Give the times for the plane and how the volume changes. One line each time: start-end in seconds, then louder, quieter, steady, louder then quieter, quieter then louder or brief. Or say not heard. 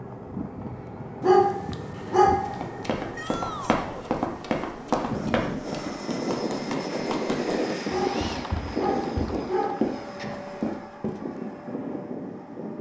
0.0-12.7 louder then quieter.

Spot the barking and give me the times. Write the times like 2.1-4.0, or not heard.
1.2-2.6, 7.8-10.2.